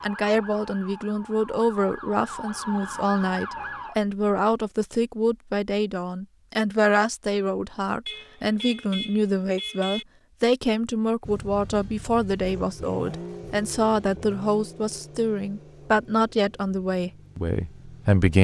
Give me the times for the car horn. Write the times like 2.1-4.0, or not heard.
8.1-10.1.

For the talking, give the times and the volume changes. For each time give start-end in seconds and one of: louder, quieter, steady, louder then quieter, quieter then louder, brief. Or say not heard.
0.0-18.3 steady.